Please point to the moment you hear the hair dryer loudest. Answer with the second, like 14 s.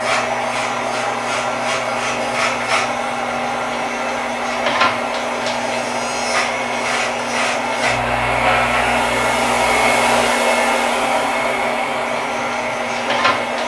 10 s.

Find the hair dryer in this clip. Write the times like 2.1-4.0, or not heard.
0.0-13.6.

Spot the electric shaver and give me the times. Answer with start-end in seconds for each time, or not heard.
0.0-10.3, 12.1-13.6.